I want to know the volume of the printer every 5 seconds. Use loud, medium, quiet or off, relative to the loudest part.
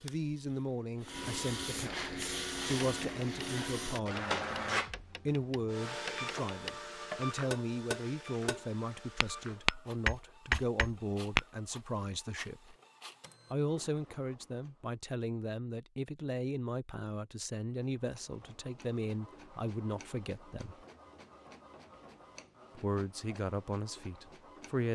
loud, medium, quiet, quiet, quiet.